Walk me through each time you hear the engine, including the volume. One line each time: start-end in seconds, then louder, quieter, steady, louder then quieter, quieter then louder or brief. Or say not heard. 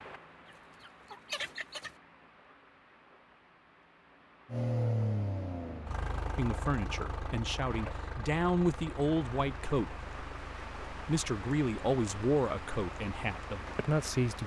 4.5-14.4 quieter.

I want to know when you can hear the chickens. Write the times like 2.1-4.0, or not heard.
0.5-1.9.